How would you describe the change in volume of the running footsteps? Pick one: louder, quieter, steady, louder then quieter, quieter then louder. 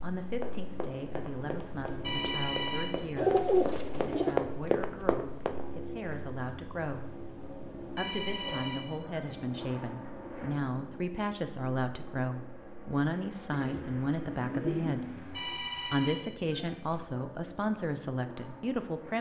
louder.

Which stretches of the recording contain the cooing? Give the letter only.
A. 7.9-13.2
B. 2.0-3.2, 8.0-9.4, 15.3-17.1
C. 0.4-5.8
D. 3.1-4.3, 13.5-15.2
D.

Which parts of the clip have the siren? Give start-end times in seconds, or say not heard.
not heard.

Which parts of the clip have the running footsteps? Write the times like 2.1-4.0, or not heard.
0.4-5.8.